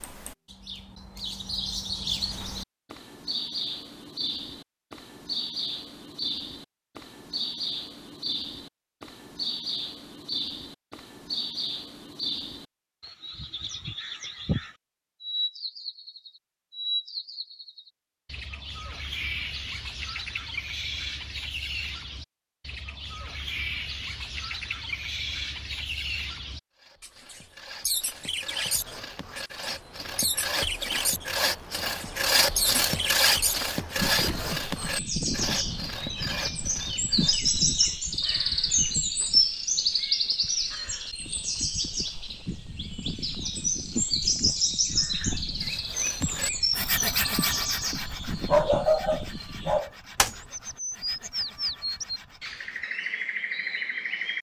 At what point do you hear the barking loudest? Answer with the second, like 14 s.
49 s.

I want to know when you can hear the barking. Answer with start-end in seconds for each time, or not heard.
48.5-49.9.